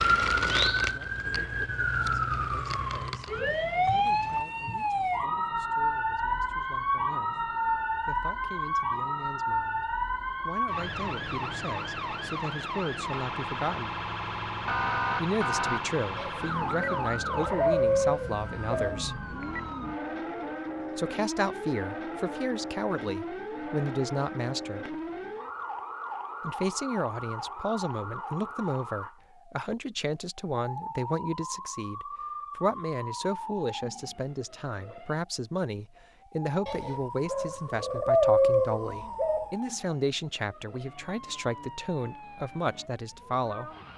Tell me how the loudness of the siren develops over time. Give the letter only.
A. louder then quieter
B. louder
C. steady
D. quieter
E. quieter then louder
D.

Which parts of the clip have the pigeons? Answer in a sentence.
You can hear the pigeons from 16.1 to 19.0 s and from 36.6 to 39.5 s.